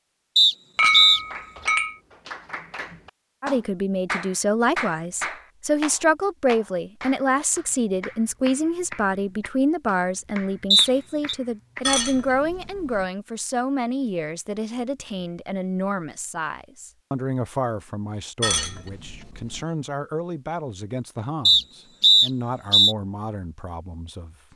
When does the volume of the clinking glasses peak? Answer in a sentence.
The loudest moment of the clinking glasses is at 1 second.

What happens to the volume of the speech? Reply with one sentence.
The volume of the speech goes down.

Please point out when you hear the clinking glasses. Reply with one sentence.
You can hear the clinking glasses from 0.8 to 1.9 s, from 11.8 to 13.1 s and from 18.4 to 19.6 s.